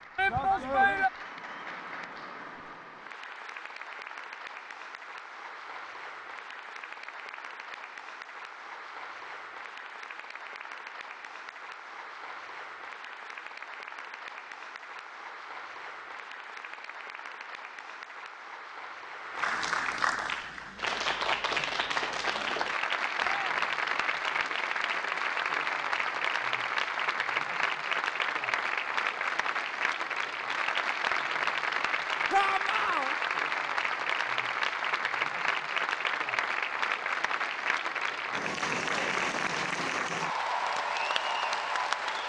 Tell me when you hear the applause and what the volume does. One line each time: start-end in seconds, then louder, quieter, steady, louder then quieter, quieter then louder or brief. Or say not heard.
0.0-42.2 louder.